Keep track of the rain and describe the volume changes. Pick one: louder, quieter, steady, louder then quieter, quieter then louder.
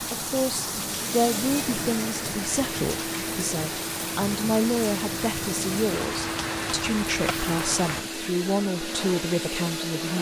steady.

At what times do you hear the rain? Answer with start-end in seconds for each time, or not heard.
0.0-8.1.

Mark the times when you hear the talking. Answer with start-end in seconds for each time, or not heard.
0.1-10.1.